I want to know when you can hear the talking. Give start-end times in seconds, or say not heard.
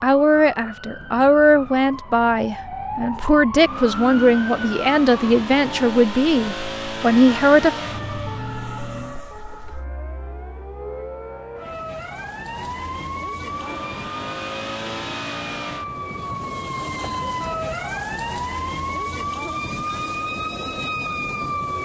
0.0-7.7.